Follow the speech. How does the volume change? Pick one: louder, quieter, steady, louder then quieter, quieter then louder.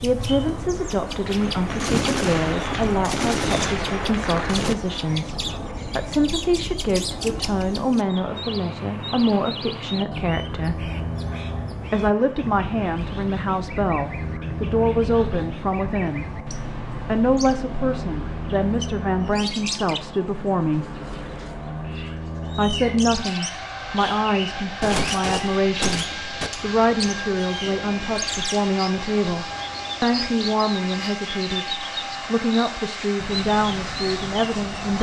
steady.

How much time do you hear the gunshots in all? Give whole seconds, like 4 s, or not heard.
5 s.